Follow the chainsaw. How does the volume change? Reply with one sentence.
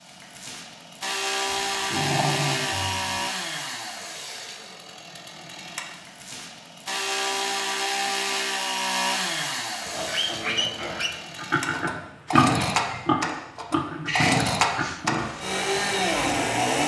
The volume of the chainsaw goes down, then up.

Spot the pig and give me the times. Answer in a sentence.
The pig can be heard from 9.8 to 16.6 s.